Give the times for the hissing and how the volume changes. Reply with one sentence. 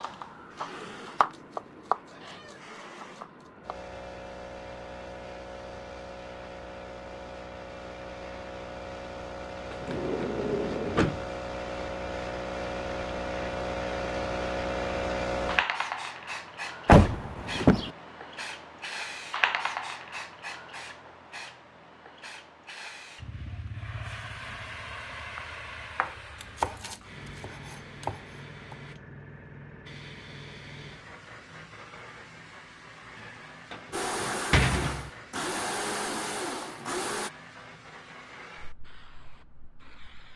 The hissing can be heard from 0.0 to 40.3 s, getting louder then quieter.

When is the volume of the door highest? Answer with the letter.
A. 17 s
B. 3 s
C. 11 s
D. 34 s
A.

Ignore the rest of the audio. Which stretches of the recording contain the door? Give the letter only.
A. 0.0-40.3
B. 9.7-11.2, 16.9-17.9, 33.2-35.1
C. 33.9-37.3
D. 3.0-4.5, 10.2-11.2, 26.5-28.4
B.